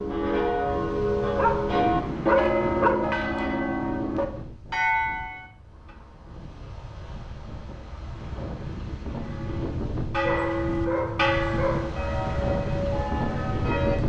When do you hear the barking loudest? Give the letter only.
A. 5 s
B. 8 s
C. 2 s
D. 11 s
C.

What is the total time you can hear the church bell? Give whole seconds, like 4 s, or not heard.
11 s.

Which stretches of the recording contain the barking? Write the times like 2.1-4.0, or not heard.
1.4-3.0, 10.2-11.9.